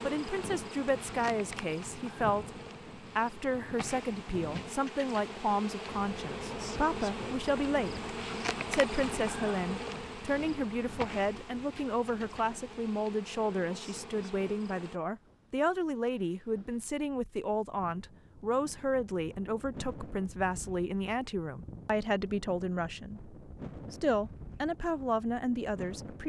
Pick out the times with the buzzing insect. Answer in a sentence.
The buzzing insect can be heard from 0.0 to 15.0 s.